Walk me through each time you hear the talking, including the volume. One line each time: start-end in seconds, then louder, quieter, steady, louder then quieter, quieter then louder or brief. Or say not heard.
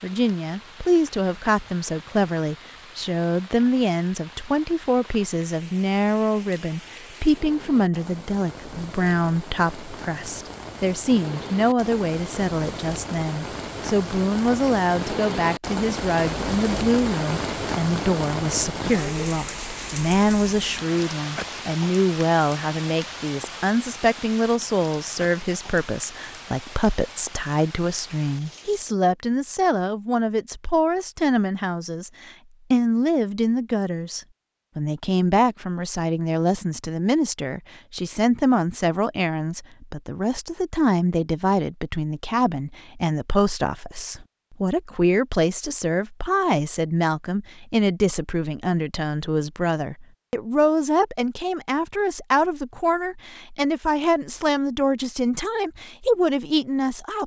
0.0-57.2 steady.